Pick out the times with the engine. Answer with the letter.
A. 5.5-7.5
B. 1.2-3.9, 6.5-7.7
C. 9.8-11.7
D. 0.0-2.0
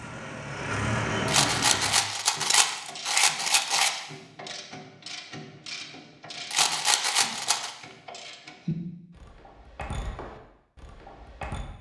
D.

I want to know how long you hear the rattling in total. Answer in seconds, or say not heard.
4 s.